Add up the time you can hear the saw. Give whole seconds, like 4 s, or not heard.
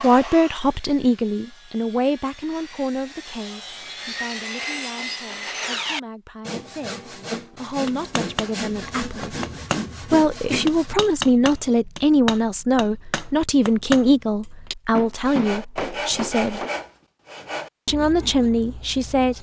15 s.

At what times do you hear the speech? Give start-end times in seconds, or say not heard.
0.0-9.3, 10.1-16.6, 17.9-19.3.